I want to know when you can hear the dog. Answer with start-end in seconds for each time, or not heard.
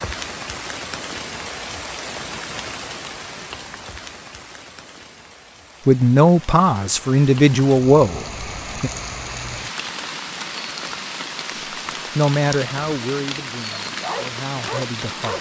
13.8-15.3.